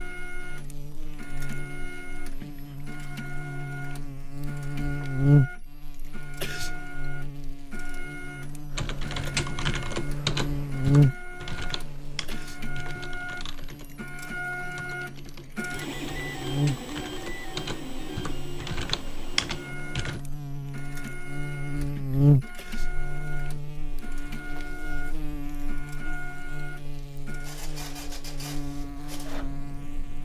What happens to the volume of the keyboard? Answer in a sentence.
The loudness of the keyboard goes down, then up.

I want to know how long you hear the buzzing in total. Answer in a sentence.
The buzzing can be heard for 30 seconds in total.